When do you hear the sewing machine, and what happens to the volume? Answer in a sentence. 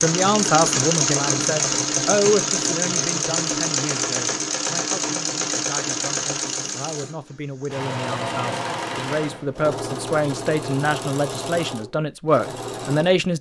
The sewing machine can be heard from 0.0 to 13.2 s, getting quieter.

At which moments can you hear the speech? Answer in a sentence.
The speech can be heard from 0.0 to 13.3 s.